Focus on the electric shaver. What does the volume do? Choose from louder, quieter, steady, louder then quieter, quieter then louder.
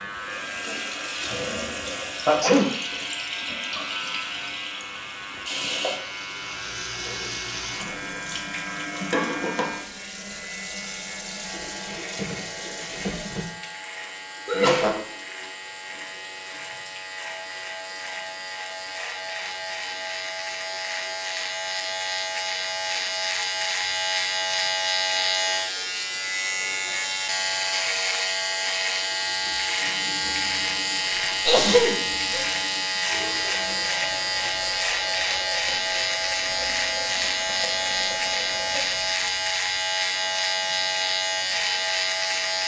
louder.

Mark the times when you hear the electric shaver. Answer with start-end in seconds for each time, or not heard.
0.0-42.6.